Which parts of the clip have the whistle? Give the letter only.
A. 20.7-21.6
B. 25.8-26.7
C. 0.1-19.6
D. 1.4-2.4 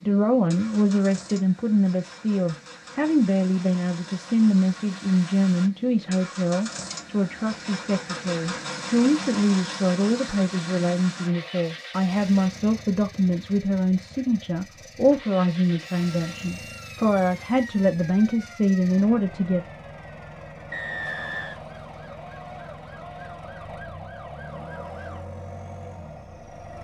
A.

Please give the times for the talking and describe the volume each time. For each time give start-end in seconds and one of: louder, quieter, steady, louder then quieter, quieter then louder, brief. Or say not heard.
0.1-19.6 steady.